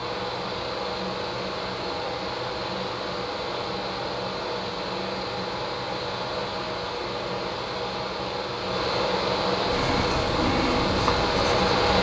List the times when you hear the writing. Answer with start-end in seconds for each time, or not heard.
9.7-11.8.